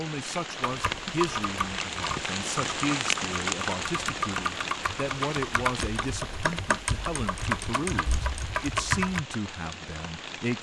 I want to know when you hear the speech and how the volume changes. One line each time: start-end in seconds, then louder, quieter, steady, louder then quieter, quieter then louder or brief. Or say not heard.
0.0-10.5 steady.